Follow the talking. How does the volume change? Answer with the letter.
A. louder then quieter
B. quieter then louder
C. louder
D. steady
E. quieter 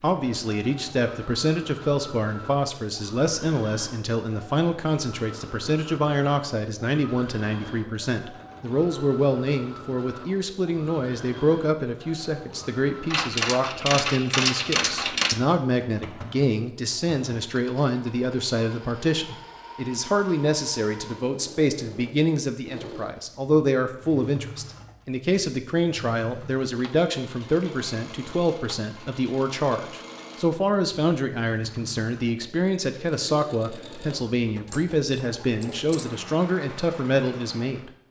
D.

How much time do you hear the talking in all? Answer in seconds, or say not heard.
38 s.